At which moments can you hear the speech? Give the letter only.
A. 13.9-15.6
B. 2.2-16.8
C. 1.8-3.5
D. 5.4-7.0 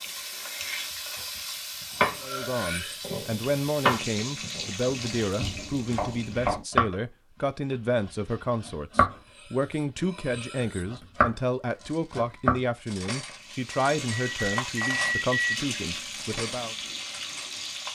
B.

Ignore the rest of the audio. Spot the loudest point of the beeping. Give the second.
15 s.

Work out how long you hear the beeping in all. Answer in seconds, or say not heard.
2 s.